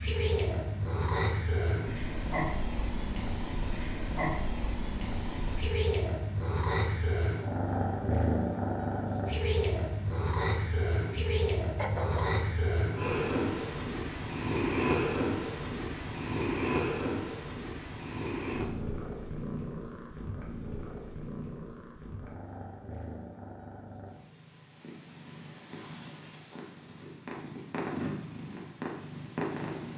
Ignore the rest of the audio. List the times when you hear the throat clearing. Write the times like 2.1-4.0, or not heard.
11.8-12.4.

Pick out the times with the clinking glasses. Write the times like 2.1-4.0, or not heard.
not heard.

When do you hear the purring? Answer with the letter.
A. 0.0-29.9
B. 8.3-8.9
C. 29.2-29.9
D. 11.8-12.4
A.